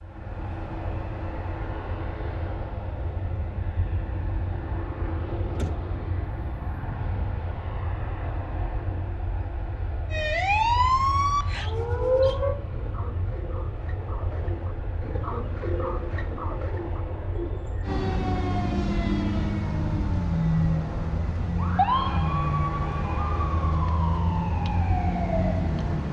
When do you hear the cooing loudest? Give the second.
16 s.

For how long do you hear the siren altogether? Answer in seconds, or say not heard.
11 s.